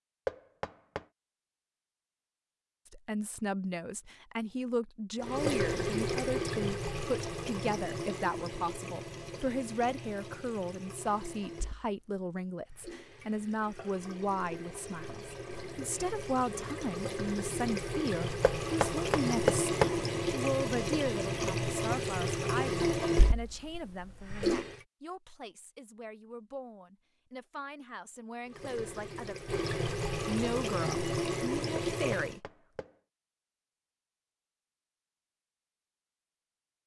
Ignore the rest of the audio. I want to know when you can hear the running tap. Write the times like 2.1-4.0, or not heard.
5.2-24.9, 28.4-32.4.